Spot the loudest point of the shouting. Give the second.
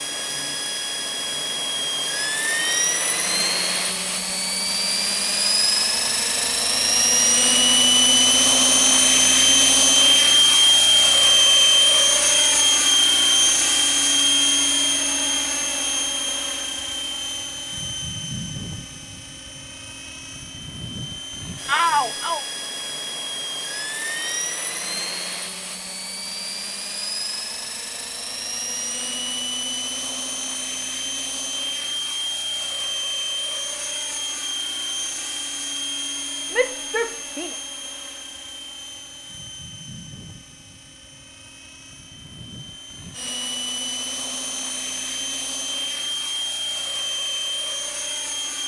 22 s.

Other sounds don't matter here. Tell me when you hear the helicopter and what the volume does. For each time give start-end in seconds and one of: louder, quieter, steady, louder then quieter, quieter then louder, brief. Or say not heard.
0.0-48.6 quieter.